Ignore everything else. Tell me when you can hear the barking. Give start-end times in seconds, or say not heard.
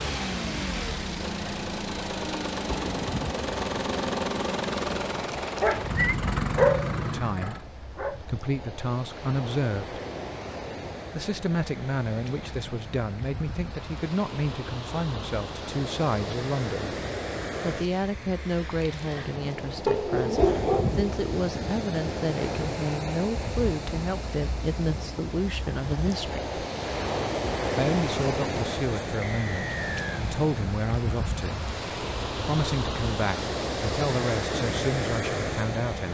5.6-8.2, 19.9-21.1.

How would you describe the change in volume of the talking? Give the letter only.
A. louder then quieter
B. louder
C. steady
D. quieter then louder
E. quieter
C.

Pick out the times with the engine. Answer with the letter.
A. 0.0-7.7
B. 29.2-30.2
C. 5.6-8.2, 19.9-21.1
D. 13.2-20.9
A.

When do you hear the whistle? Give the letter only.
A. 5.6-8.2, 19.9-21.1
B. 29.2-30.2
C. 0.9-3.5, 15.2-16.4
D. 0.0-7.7
B.